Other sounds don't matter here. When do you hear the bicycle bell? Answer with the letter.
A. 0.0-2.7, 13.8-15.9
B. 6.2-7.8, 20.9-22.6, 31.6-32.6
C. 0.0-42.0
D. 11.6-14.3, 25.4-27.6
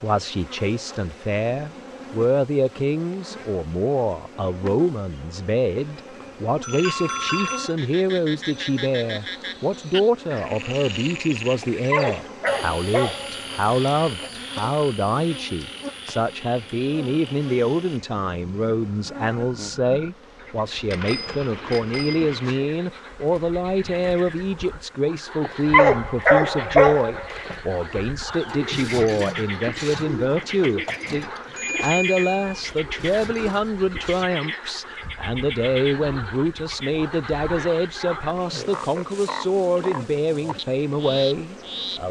B.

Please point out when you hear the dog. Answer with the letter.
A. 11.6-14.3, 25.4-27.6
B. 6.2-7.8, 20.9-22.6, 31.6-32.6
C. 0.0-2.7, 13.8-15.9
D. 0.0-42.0
A.